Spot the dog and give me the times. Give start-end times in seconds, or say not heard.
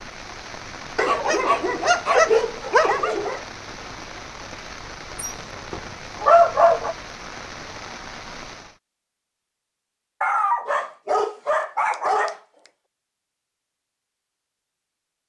0.9-3.4, 5.2-7.0, 10.2-12.4.